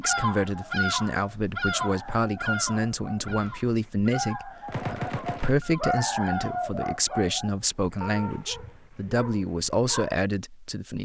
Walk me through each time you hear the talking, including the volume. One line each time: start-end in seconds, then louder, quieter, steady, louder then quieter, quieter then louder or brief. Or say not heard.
0.0-10.9 steady.